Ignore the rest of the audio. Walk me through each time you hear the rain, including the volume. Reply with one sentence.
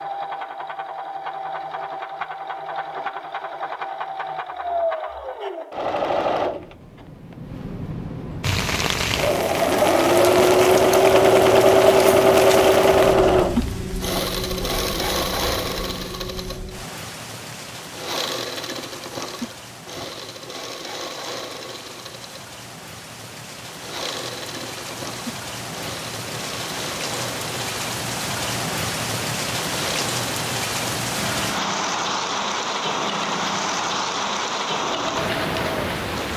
The rain can be heard from 8.4 to 36.3 s, getting quieter then louder.